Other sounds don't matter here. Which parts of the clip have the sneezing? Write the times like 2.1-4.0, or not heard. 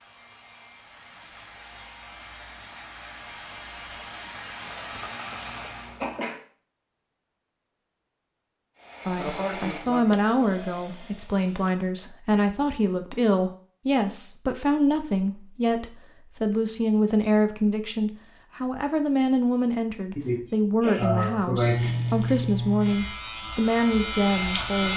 4.7-6.4, 9.2-10.3, 20.1-21.9.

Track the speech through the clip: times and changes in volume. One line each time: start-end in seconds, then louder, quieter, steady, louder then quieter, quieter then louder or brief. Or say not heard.
9.1-24.9 steady.